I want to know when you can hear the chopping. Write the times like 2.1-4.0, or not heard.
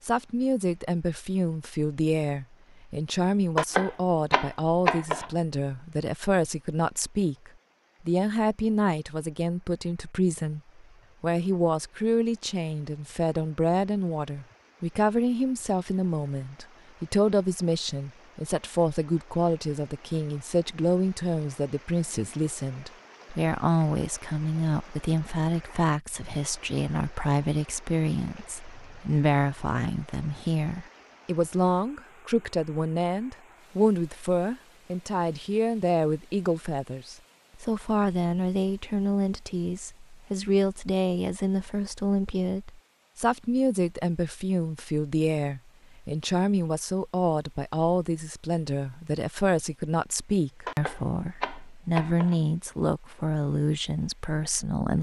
3.5-5.3, 50.6-52.4.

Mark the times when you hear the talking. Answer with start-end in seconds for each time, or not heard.
0.0-54.9.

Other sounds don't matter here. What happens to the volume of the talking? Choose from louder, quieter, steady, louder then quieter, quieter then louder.
steady.